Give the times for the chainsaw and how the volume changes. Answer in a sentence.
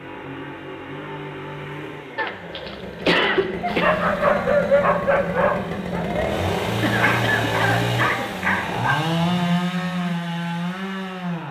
You can hear the chainsaw from 0.0 to 11.4 s, getting louder.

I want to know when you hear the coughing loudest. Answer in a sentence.
The volume of the coughing peaks at 3 seconds.